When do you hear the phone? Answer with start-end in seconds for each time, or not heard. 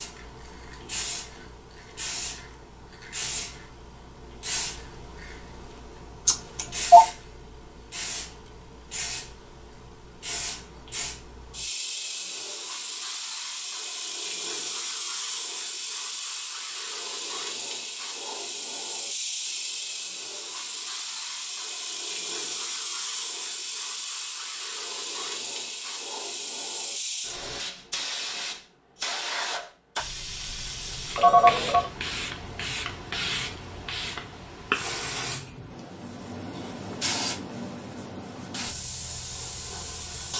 6.2-7.0, 31.1-31.9.